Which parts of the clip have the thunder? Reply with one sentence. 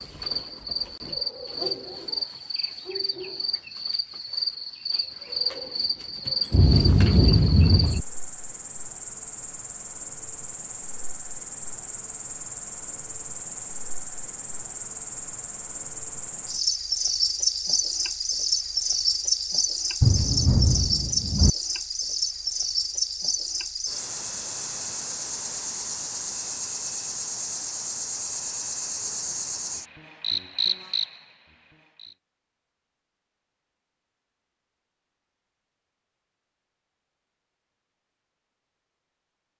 You can hear the thunder from 6.5 to 8.1 s and from 20.0 to 21.5 s.